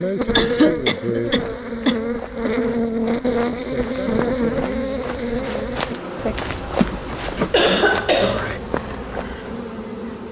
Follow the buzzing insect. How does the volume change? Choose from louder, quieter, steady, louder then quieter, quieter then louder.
quieter.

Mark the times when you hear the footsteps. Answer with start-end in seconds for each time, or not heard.
1.4-9.6.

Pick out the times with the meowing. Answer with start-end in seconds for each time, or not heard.
not heard.